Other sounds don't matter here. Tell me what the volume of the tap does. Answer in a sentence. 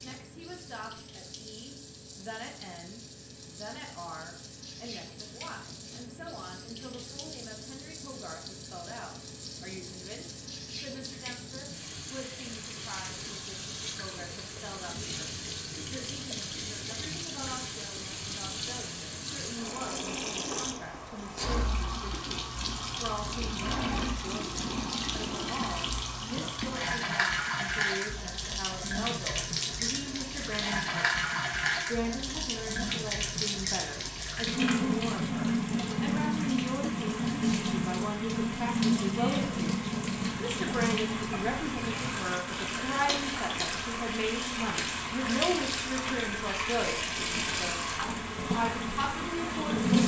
The loudness of the tap goes up.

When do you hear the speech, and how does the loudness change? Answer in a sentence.
The speech can be heard from 0.0 to 49.9 s, getting louder.